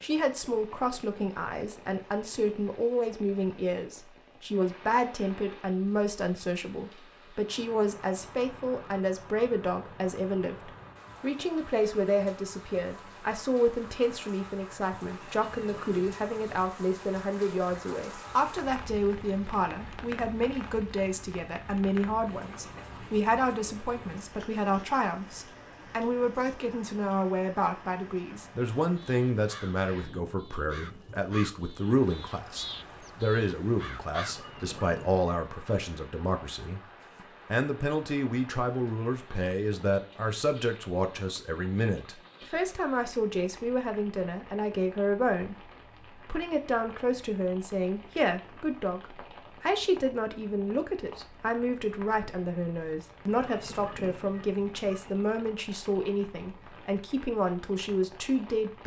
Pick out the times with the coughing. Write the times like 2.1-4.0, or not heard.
not heard.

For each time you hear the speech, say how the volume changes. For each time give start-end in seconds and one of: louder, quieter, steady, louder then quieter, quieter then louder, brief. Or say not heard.
0.0-36.8 steady
37.5-58.8 steady.